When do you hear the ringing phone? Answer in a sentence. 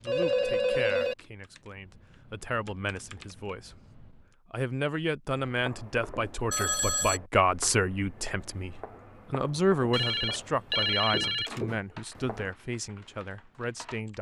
The ringing phone can be heard from 0.1 to 1.1 s, from 6.5 to 7.2 s and from 9.9 to 11.6 s.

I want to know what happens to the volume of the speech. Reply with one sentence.
The volume of the speech goes up, then down.